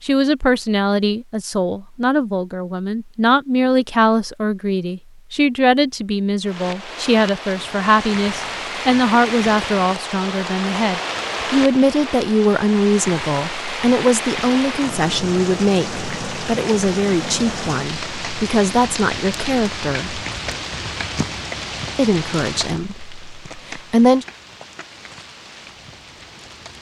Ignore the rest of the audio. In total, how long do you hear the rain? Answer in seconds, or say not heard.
20 s.